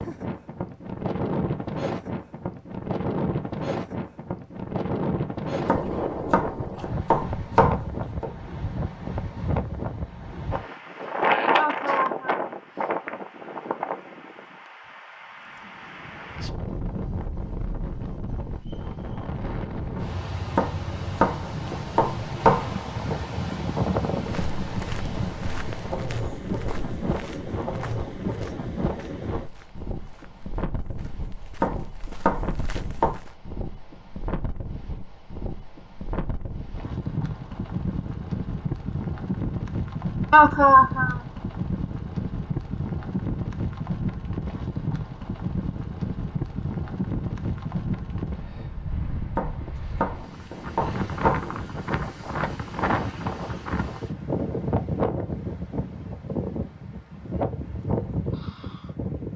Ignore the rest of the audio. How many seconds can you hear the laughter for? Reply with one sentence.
The laughter can be heard for 2 seconds in total.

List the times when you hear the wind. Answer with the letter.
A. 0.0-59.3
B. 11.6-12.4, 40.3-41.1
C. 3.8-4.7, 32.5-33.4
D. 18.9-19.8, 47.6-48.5
A.